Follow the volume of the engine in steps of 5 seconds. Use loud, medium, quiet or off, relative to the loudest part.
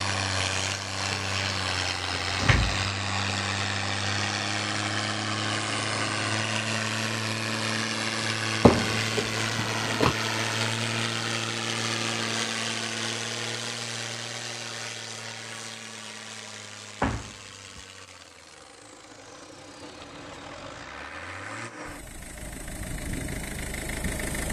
loud, loud, loud, quiet, medium.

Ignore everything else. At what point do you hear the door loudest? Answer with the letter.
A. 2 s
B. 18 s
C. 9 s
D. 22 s
C.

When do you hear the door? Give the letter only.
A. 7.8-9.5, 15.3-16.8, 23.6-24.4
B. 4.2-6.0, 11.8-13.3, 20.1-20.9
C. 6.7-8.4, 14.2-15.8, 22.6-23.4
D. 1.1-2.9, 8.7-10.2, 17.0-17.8
D.